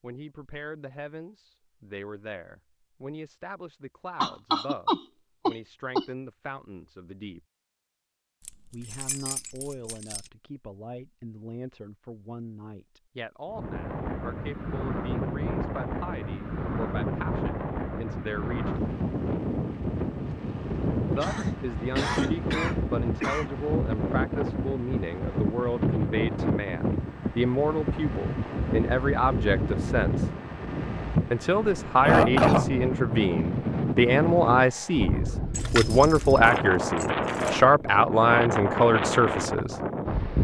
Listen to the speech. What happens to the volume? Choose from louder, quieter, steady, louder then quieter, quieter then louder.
louder.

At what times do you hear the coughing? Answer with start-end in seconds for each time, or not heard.
4.2-6.0, 21.2-23.4, 31.9-32.9.